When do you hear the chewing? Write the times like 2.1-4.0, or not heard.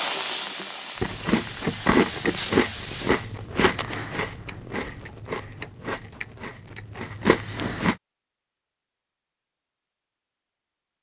1.0-8.0.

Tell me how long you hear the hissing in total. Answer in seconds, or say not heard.
3 s.